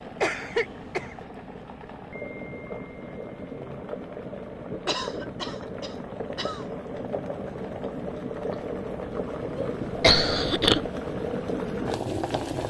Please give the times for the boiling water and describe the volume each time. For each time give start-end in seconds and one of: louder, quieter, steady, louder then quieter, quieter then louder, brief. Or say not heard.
0.0-12.6 louder.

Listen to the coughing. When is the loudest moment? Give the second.
10 s.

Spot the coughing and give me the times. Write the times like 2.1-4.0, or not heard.
0.2-1.1, 4.8-6.8, 9.6-10.8.